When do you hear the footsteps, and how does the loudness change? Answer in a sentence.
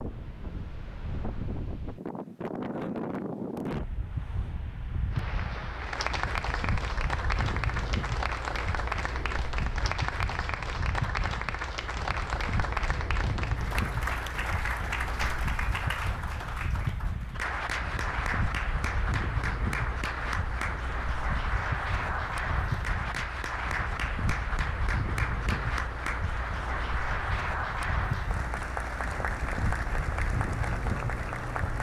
You can't hear the footsteps here.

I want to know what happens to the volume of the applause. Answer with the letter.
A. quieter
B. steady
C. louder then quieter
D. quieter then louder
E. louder
B.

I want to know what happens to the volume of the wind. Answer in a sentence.
The volume of the wind stays about the same.